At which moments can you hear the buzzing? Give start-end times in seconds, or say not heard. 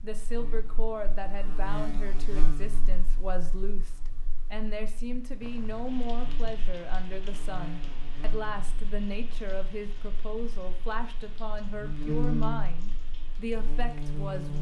0.0-14.5.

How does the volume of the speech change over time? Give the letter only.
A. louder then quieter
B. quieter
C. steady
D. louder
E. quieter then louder
C.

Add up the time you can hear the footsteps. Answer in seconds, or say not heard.
not heard.